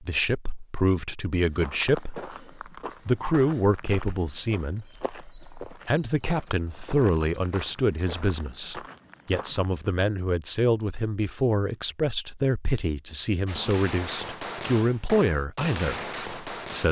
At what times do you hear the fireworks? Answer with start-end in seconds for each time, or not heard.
13.4-16.8.